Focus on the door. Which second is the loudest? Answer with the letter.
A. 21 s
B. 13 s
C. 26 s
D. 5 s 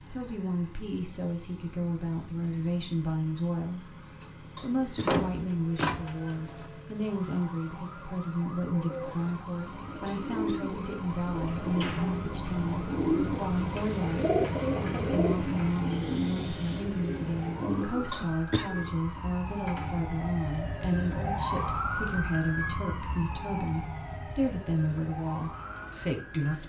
D.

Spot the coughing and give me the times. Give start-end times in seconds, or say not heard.
4.5-5.2, 10.1-10.8, 18.1-18.8.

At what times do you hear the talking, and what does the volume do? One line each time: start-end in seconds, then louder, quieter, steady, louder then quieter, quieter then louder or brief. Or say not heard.
0.1-26.6 steady.